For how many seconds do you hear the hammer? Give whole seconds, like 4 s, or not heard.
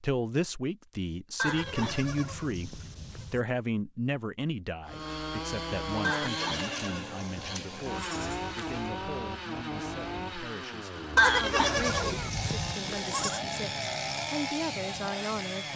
not heard.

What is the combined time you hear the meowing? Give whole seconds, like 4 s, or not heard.
3 s.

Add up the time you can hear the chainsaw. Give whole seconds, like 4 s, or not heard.
11 s.